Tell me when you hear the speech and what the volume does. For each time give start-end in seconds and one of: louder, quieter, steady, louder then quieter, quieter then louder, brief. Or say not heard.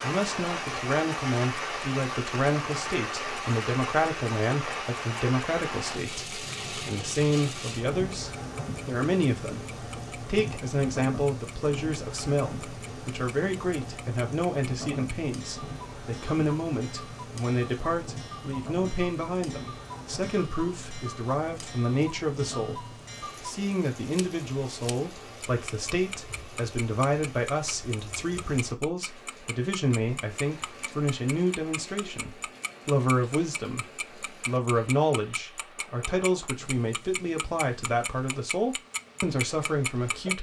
0.0-40.3 steady.